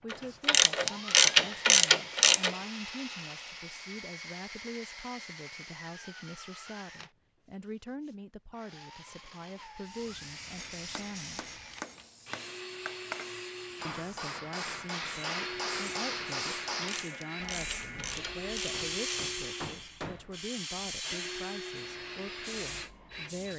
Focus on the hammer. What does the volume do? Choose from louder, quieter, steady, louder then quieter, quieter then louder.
louder then quieter.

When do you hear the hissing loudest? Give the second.
19 s.